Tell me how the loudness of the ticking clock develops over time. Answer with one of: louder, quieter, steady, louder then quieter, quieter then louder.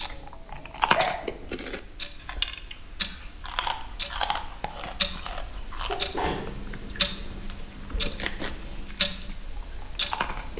louder.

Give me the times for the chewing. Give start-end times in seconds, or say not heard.
0.0-10.5.